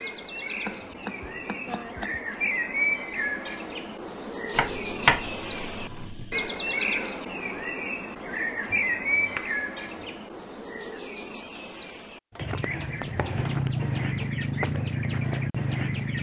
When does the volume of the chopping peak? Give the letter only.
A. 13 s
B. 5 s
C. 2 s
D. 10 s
B.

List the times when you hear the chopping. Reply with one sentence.
The chopping can be heard from 0.6 to 2.2 s, from 4.5 to 6.5 s, from 8.7 to 10.1 s and from 12.3 to 14.3 s.